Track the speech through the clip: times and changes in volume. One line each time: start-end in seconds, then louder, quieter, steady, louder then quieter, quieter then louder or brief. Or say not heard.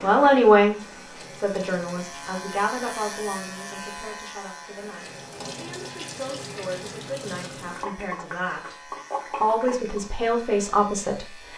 0.0-0.8 brief
1.4-11.5 quieter then louder.